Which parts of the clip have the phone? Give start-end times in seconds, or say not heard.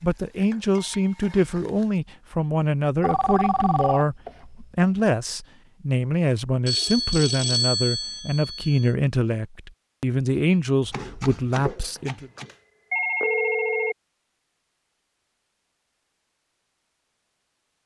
3.0-4.0, 6.7-8.9, 11.9-13.9.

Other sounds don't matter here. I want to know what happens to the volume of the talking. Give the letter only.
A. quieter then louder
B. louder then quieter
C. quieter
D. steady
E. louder
D.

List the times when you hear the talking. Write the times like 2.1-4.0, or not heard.
0.0-12.3.